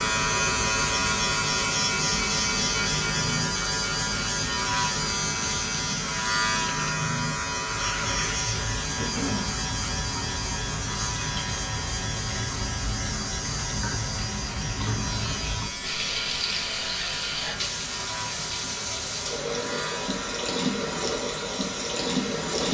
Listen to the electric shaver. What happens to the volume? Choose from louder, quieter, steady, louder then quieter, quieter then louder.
quieter.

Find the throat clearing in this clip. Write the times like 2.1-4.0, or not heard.
8.9-9.6.